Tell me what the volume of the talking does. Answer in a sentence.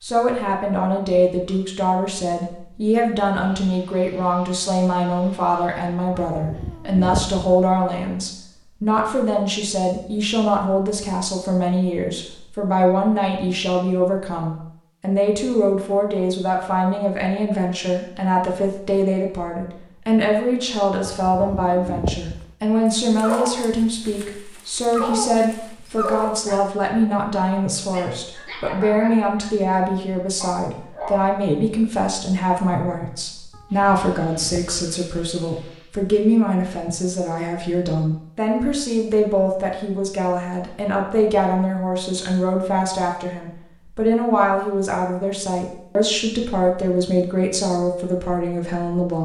The volume of the talking stays about the same.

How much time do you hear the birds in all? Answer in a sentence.
You can't hear the birds here.